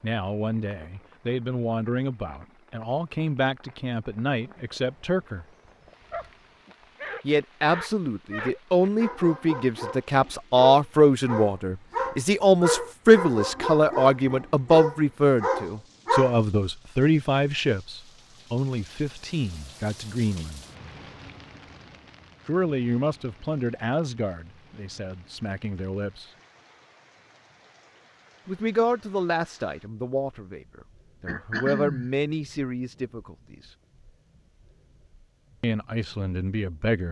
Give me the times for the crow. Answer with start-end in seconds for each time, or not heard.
not heard.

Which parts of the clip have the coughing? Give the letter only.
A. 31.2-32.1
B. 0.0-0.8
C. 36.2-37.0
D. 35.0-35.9
A.